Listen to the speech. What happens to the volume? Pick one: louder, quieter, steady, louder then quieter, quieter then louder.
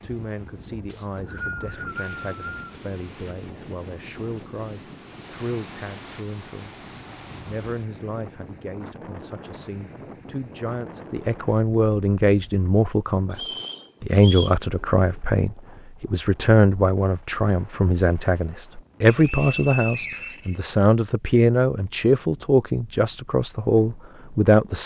louder.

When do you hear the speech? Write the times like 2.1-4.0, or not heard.
0.0-6.8, 7.5-13.4, 14.0-24.8.